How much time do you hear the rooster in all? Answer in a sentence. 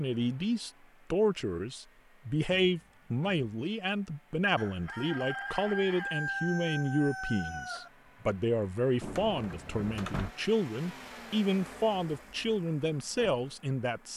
The rooster can be heard for 3 seconds in total.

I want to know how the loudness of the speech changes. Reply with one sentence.
The volume of the speech stays about the same.